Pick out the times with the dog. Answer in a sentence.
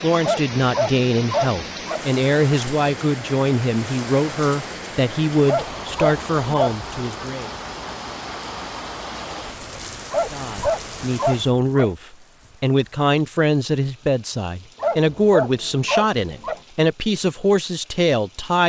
You can hear the dog from 0.2 to 2.0 s, from 5.5 to 6.8 s, from 10.1 to 11.9 s and from 14.8 to 16.6 s.